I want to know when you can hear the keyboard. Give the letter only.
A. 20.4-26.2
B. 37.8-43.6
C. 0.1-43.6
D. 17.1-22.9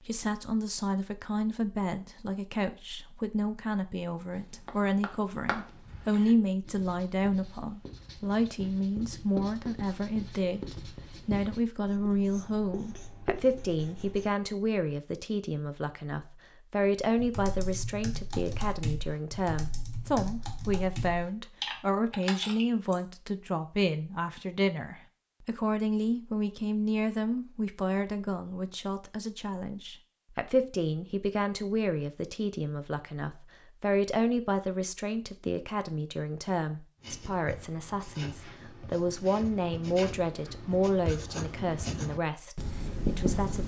D.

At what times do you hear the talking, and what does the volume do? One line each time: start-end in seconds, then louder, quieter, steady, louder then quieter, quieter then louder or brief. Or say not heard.
0.1-43.6 steady.